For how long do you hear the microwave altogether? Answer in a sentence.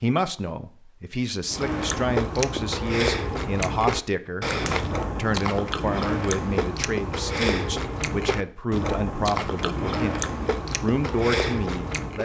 You can't hear the microwave here.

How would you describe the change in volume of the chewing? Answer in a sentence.
The loudness of the chewing stays about the same.